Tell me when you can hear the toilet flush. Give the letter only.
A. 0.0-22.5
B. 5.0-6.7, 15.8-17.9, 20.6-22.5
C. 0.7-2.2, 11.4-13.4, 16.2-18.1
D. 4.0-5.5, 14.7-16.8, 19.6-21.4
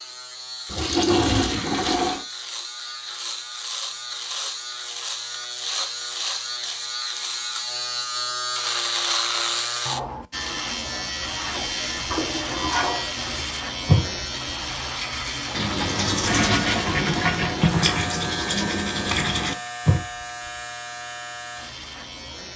C.